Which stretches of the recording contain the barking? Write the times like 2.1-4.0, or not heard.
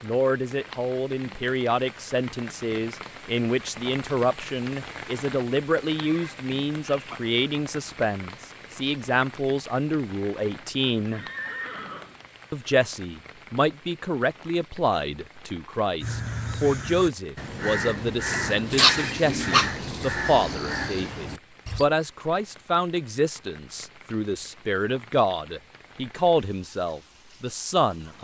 18.2-19.7.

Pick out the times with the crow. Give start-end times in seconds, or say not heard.
16.0-21.9.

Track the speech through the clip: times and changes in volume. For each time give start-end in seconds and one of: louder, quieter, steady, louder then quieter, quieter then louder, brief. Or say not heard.
0.0-11.2 steady
12.5-28.1 steady.